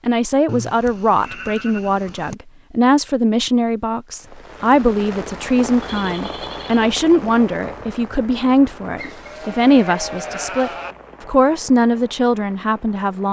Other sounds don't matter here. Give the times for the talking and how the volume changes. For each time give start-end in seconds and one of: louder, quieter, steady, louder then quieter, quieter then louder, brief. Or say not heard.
0.1-13.2 steady.